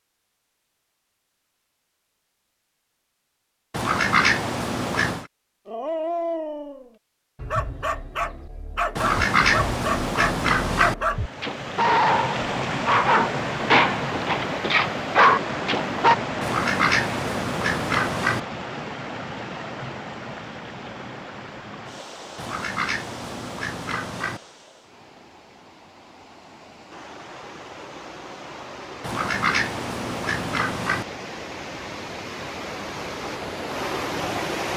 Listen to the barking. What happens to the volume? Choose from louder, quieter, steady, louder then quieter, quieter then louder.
louder.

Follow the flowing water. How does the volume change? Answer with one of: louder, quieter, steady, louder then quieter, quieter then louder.
quieter then louder.